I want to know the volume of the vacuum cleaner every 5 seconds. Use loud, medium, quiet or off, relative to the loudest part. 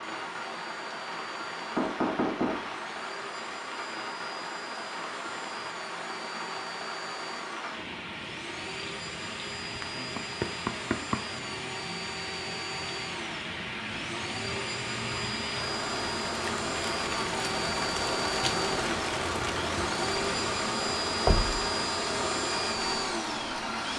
quiet, medium, medium, loud, loud.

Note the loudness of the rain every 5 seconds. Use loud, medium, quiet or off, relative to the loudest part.
medium, medium, medium, loud, loud.